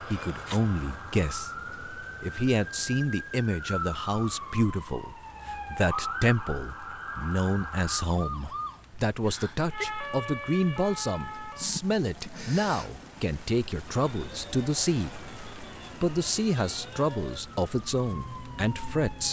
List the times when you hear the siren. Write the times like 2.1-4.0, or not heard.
0.0-19.2.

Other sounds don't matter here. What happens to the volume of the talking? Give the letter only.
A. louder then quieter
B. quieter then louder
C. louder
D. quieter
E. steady
E.